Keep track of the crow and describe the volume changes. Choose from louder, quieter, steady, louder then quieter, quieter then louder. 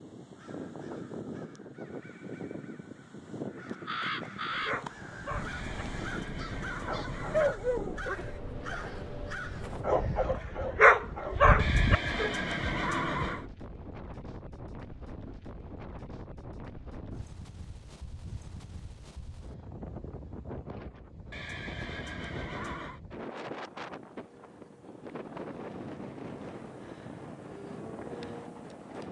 louder.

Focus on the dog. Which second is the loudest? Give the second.
11 s.